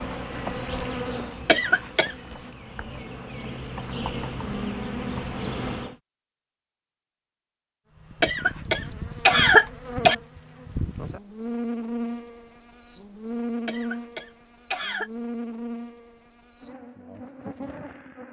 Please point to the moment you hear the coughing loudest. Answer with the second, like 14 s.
9 s.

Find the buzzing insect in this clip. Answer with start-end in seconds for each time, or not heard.
0.0-6.0, 8.0-18.2.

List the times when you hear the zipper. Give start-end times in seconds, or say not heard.
not heard.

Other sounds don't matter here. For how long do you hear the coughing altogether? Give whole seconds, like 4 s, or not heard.
4 s.